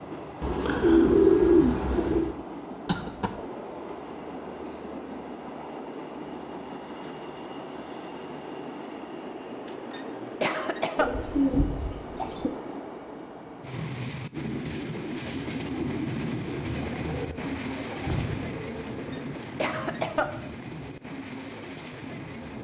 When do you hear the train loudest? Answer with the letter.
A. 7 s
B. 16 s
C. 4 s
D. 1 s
B.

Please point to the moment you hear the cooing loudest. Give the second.
1 s.